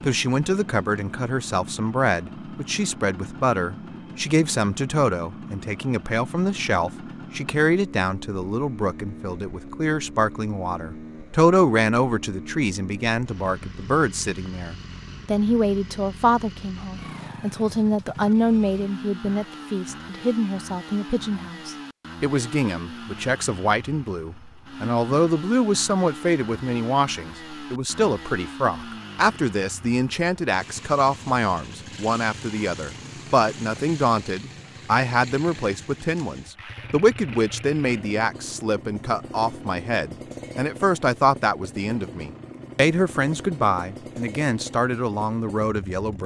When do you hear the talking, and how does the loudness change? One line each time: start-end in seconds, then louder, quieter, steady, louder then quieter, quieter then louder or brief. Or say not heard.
0.0-46.2 steady.